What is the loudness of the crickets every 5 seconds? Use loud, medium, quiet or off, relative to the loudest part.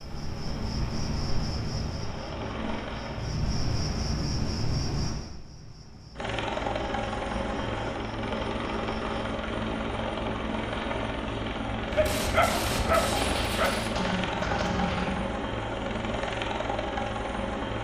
loud, medium, off, off.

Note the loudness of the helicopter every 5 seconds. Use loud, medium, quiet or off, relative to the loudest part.
medium, loud, loud, loud.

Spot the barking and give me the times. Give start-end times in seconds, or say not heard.
11.9-13.8.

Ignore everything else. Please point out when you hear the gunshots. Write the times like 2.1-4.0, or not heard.
11.9-15.2.